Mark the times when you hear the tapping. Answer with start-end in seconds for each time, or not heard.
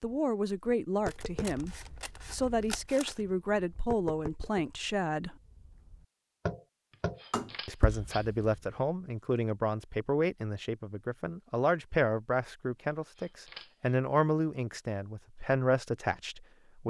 1.1-8.5.